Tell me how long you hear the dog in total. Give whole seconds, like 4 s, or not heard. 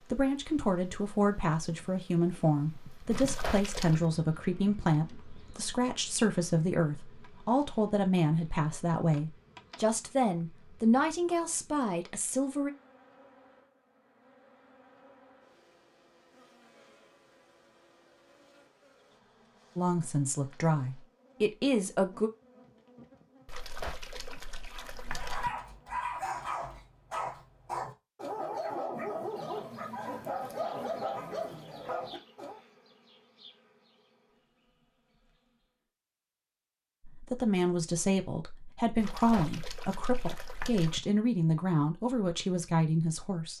8 s.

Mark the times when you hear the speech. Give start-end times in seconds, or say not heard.
0.1-12.7, 19.8-22.3, 37.0-43.5.